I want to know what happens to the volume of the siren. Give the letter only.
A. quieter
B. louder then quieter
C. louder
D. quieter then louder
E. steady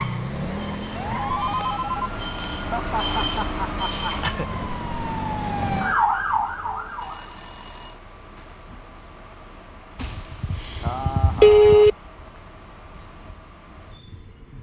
D.